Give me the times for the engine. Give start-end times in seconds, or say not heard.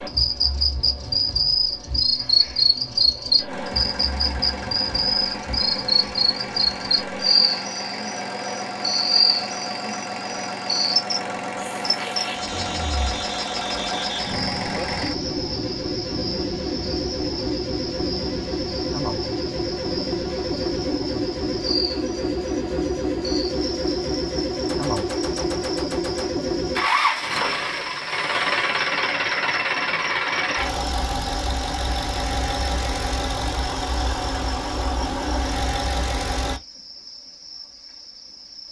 3.5-36.6.